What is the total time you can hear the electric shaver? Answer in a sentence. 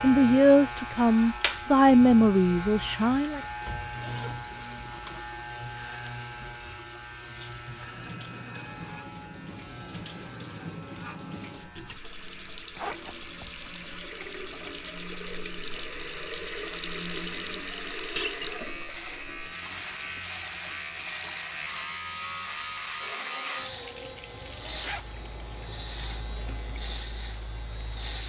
The electric shaver can be heard for 28 seconds in total.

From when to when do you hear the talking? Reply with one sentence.
The talking can be heard from 0.0 to 3.4 s.